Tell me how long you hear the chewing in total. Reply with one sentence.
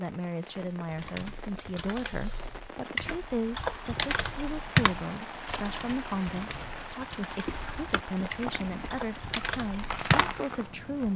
You can hear the chewing for 4 seconds altogether.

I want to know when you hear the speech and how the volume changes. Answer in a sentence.
You can hear the speech from 0.0 to 11.1 s, at a steady volume.